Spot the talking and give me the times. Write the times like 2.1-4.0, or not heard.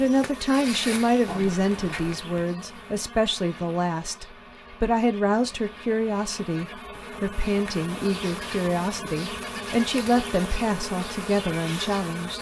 0.0-12.3.